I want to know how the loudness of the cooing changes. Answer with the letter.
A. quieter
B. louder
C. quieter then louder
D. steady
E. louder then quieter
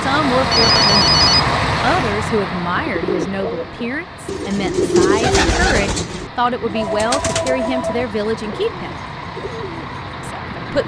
E.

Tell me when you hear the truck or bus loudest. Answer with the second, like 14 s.
1 s.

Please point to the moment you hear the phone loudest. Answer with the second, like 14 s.
1 s.